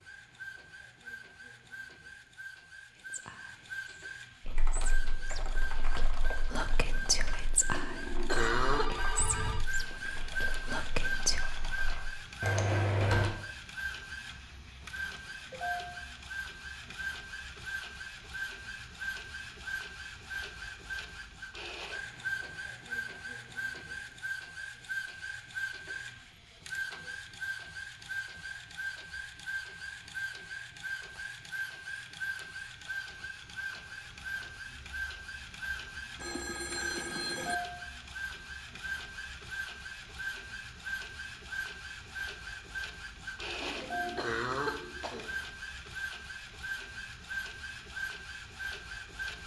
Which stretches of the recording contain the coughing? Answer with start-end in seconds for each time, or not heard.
7.7-9.1, 43.6-45.3.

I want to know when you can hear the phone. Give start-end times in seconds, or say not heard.
8.3-9.7, 36.1-37.5.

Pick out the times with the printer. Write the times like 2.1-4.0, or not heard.
0.0-49.4.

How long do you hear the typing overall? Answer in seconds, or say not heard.
9 s.